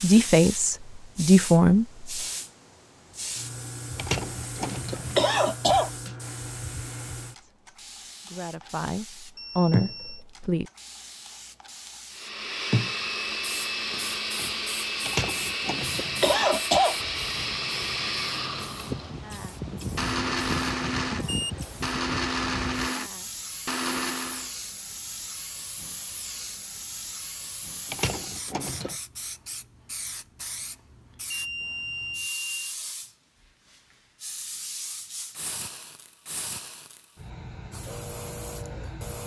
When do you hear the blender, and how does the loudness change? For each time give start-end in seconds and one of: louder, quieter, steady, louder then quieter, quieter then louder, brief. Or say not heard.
12.1-24.5 steady.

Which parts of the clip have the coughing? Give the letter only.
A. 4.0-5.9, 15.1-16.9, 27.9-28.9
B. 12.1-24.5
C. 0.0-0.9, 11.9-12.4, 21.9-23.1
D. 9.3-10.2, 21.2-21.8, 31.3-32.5
A.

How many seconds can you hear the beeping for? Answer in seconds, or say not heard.
3 s.